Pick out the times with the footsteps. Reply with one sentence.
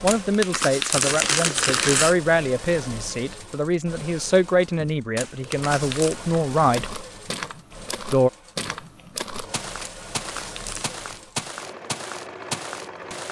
You can hear the footsteps from 6.5 to 13.2 s.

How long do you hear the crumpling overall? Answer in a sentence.
You can hear the crumpling for 4 seconds altogether.